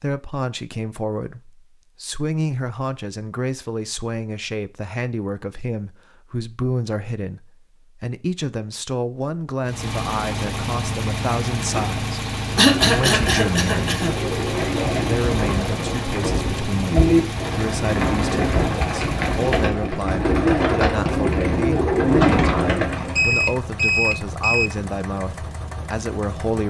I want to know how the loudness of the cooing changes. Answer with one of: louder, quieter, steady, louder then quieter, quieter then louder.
louder.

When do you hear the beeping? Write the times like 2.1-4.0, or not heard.
23.1-24.7.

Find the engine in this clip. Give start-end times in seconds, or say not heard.
9.7-26.6.